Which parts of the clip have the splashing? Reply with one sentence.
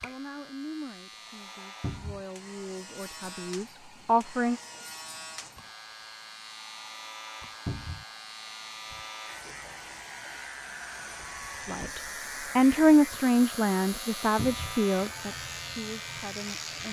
The splashing can't be heard in this clip.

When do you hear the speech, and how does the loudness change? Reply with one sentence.
You can hear the speech from 0.0 to 4.5 s, getting quieter then louder; and from 11.7 to 16.8 s, getting quieter.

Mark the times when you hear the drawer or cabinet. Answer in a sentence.
You can hear the drawer or cabinet from 1.8 to 2.2 s, from 7.7 to 8.1 s and from 14.3 to 14.8 s.